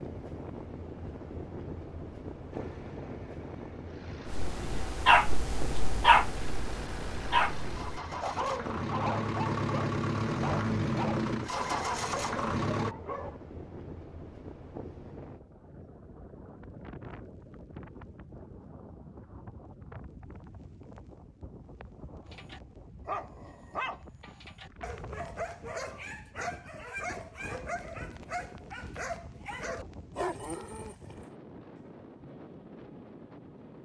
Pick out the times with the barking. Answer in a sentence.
You can hear the barking from 4.2 to 13.4 s and from 22.3 to 31.2 s.